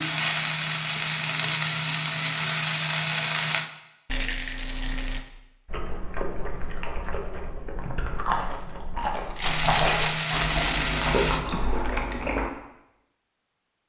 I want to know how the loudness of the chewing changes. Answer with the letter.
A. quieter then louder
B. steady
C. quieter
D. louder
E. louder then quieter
D.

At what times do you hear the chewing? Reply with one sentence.
You can hear the chewing from 5.7 to 12.5 s.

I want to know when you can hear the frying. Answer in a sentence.
The frying can be heard from 0.0 to 3.7 s and from 9.4 to 11.4 s.